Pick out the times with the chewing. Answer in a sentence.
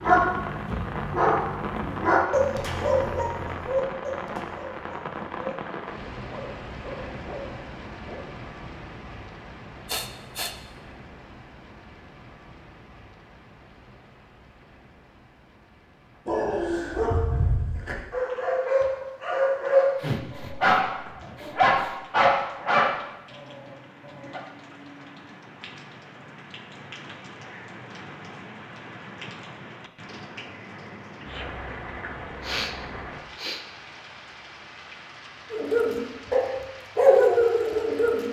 The chewing can't be heard in this clip.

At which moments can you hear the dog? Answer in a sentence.
You can hear the dog from 0.0 to 8.2 s, from 16.2 to 24.4 s and from 35.5 to 38.2 s.